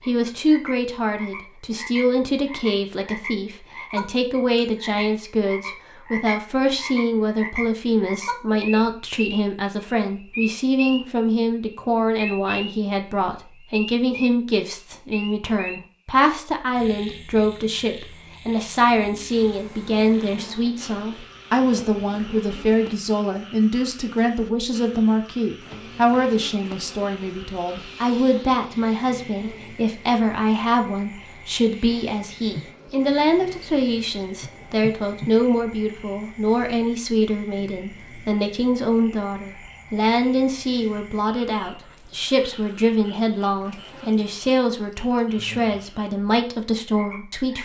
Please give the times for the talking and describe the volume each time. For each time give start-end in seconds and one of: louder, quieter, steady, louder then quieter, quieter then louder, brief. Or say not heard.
0.1-47.6 steady.